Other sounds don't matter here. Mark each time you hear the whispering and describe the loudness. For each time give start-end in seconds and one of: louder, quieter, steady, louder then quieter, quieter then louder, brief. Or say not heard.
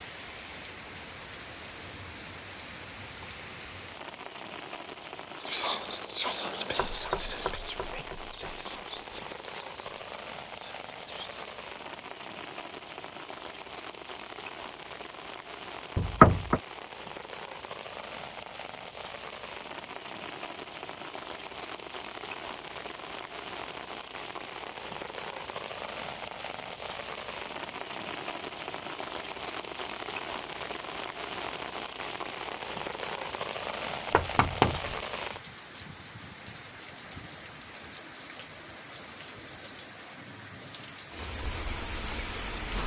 5.3-11.9 quieter.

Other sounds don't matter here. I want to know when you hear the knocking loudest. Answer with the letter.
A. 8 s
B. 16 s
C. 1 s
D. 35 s
B.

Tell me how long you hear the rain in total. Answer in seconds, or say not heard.
43 s.